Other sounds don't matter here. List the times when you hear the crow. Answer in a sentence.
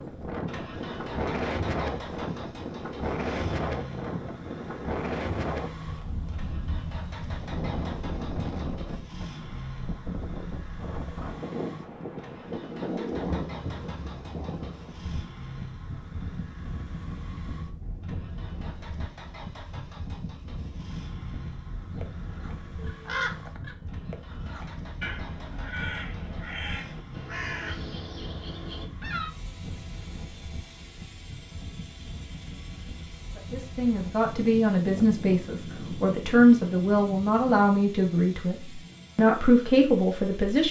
The crow can be heard from 22.0 to 29.4 s.